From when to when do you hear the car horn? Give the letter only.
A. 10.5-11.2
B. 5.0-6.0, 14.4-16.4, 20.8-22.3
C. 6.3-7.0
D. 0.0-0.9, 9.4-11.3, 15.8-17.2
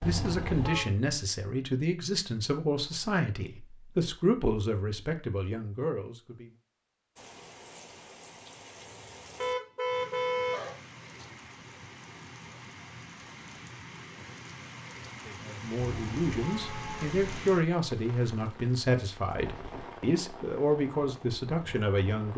D.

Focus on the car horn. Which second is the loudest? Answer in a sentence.
The volume of the car horn peaks at 10 seconds.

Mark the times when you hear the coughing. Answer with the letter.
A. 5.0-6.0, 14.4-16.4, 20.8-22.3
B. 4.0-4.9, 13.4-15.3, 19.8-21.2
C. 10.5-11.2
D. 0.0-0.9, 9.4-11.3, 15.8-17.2
C.